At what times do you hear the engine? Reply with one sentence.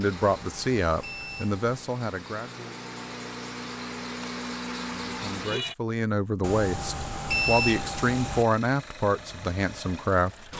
You can hear the engine from 0.0 to 5.8 s and from 7.3 to 10.5 s.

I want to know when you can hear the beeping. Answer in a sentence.
You can hear the beeping from 0.3 to 1.9 s and from 6.4 to 8.4 s.